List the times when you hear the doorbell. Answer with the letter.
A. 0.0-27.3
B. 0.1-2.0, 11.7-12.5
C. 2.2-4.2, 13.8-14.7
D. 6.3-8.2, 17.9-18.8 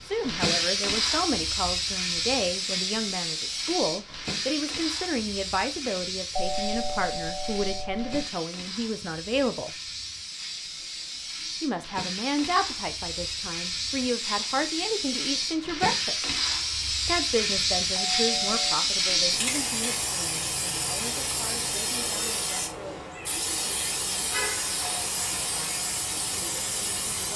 D.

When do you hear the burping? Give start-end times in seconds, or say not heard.
not heard.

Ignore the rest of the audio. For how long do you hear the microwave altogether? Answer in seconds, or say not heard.
not heard.